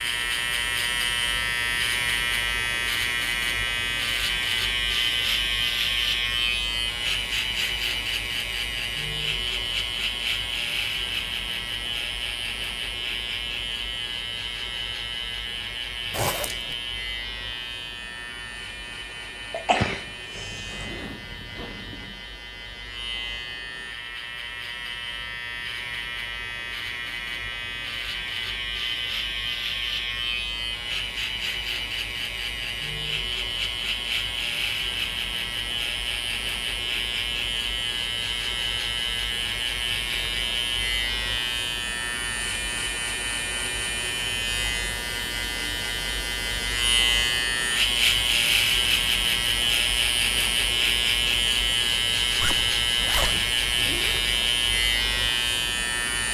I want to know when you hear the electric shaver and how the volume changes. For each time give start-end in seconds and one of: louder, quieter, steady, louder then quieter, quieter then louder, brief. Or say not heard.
0.0-56.2 quieter then louder.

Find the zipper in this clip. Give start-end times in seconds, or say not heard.
16.1-16.8, 20.3-22.2, 52.4-54.2.